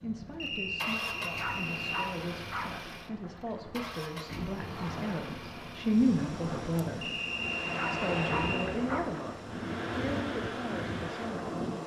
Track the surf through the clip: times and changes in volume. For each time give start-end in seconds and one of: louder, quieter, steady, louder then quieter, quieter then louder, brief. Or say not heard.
0.0-11.8 louder.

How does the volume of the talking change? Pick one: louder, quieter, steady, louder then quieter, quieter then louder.
louder then quieter.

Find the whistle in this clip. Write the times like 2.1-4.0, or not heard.
0.3-2.1, 7.0-8.7.